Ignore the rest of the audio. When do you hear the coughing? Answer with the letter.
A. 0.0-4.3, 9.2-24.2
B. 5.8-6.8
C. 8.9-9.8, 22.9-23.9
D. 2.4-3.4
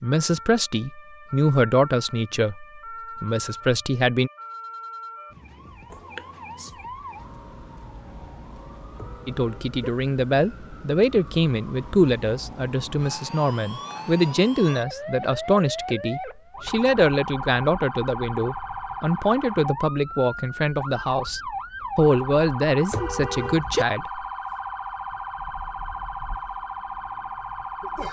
B.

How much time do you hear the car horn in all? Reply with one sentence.
The car horn can be heard for 2 seconds in total.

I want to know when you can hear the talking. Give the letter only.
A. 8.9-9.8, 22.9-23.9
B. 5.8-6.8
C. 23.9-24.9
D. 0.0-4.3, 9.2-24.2
D.